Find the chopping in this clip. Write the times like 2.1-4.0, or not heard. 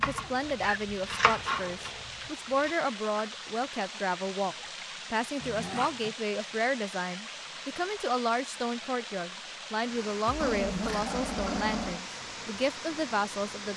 0.0-2.8.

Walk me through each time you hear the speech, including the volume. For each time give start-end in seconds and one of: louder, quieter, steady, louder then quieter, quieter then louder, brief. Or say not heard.
0.0-13.7 steady.